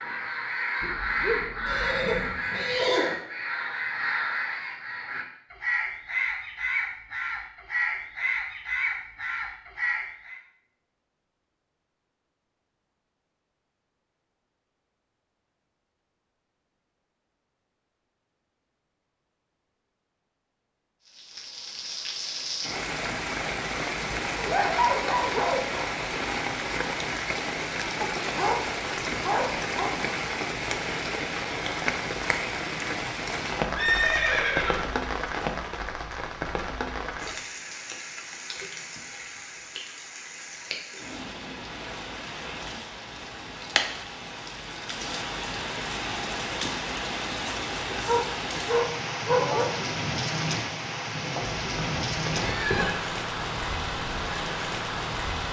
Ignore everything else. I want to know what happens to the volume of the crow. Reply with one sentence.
The loudness of the crow stays about the same.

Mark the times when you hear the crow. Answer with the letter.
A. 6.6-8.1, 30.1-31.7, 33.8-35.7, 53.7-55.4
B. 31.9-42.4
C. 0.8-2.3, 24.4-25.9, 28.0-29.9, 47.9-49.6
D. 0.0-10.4
D.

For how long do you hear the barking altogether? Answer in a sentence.
You can hear the barking for 7 seconds altogether.